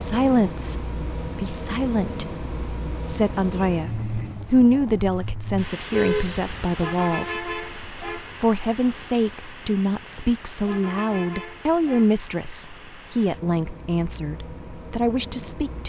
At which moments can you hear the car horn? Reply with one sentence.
You can hear the car horn from 5.9 to 6.8 s.